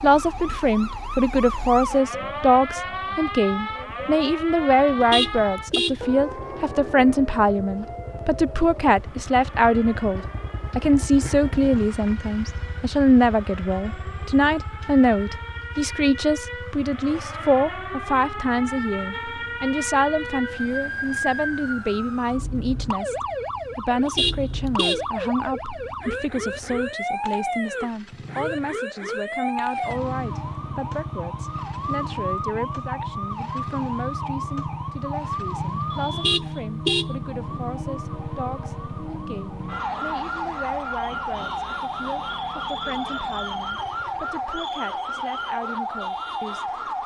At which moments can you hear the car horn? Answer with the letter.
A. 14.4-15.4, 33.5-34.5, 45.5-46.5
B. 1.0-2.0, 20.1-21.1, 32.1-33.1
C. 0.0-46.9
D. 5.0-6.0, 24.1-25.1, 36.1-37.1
D.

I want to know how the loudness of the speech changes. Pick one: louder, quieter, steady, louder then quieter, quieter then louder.
quieter.